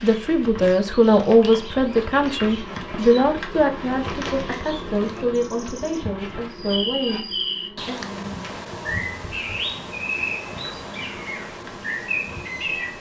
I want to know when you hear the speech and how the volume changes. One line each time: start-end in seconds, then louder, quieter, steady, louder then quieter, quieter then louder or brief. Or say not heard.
0.0-8.0 quieter.